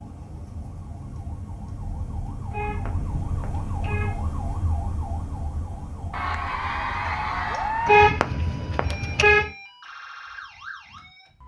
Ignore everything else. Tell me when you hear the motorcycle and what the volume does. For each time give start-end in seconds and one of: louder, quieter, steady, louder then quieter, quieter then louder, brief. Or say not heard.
not heard.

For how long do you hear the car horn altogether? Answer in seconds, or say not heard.
3 s.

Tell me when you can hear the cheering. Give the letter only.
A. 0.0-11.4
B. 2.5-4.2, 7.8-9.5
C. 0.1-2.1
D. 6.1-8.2
D.